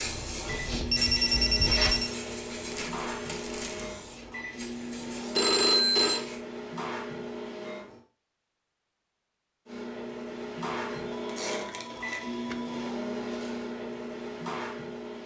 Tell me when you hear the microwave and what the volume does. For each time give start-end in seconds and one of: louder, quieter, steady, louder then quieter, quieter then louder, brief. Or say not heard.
0.1-8.0 steady
9.7-15.2 steady.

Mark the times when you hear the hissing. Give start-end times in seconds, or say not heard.
0.0-6.5.